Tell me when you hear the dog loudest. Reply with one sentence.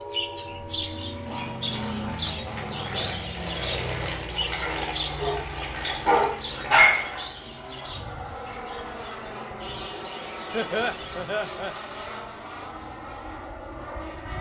The volume of the dog peaks at 7 seconds.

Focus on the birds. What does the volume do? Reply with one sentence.
The volume of the birds goes down.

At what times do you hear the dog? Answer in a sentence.
The dog can be heard from 4.6 to 7.0 s.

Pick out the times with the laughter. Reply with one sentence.
You can hear the laughter from 10.5 to 11.8 s.